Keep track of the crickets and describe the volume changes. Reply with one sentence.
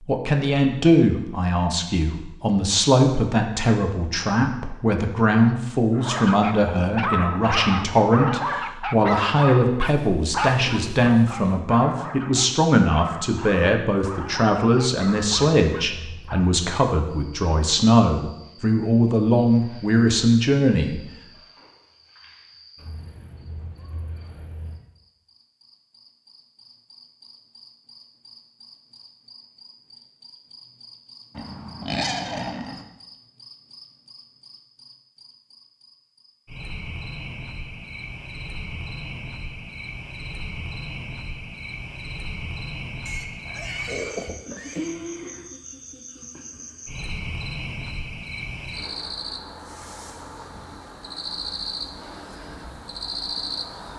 The volume of the crickets goes up.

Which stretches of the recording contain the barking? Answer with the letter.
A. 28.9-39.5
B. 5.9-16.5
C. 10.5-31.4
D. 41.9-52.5
B.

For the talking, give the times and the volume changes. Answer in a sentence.
The talking can be heard from 0.1 to 21.0 s, at a steady volume.